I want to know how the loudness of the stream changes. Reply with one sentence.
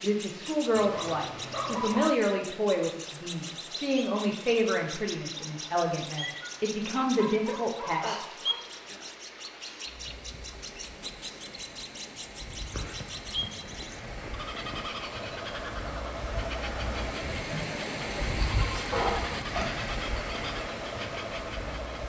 The volume of the stream goes up.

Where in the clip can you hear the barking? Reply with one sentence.
The barking can be heard from 0.8 to 2.0 s, from 6.2 to 8.7 s, from 12.7 to 14.9 s, from 17.2 to 17.9 s and from 18.9 to 19.8 s.